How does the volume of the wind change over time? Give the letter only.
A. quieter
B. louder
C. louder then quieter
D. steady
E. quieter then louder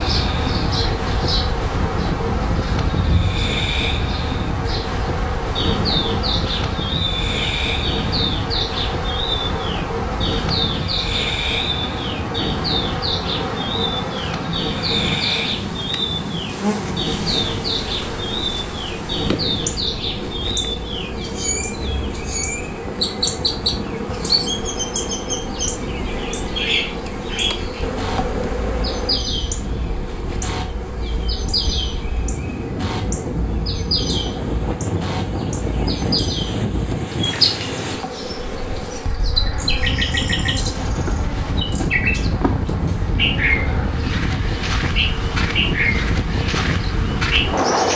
E.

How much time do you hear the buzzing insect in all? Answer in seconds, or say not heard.
48 s.